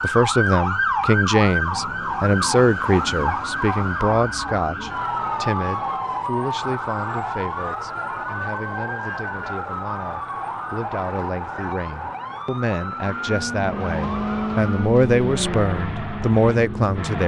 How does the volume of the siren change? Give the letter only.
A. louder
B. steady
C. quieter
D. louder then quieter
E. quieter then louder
C.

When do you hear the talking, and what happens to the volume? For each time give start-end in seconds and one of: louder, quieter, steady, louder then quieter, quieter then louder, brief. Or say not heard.
0.0-17.2 quieter then louder.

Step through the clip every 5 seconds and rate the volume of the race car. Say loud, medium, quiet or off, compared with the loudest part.
off, off, loud, loud.